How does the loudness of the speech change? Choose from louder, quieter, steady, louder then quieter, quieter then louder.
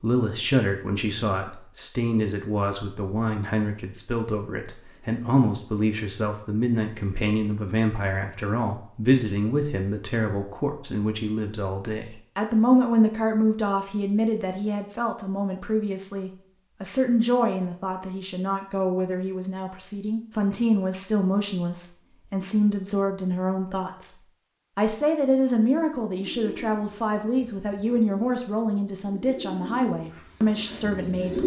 steady.